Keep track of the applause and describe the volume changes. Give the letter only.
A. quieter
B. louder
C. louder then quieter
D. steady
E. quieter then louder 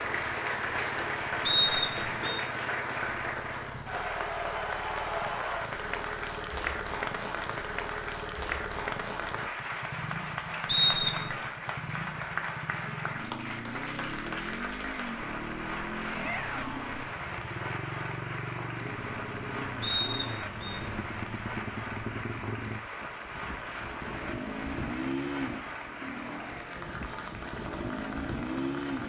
A.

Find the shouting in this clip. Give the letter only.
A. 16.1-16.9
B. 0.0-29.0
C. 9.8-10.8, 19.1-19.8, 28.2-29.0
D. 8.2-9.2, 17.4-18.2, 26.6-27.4
A.